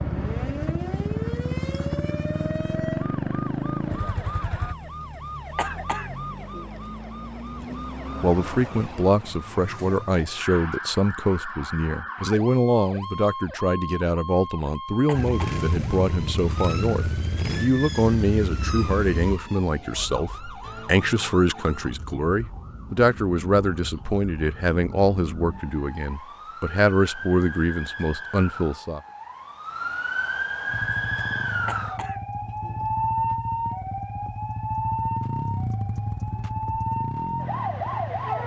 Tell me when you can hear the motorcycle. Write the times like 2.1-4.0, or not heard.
0.0-4.8, 15.1-19.4, 30.6-38.4.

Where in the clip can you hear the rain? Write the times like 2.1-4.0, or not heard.
not heard.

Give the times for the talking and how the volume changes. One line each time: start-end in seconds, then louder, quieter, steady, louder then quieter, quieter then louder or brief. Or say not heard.
7.5-29.0 steady.